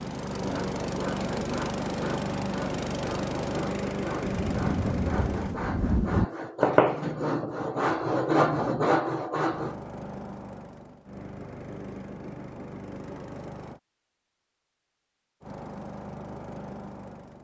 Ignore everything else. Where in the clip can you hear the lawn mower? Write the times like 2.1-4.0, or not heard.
0.0-5.6, 9.4-13.8, 15.4-17.3.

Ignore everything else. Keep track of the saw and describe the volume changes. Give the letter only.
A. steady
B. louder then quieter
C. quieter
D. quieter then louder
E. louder
E.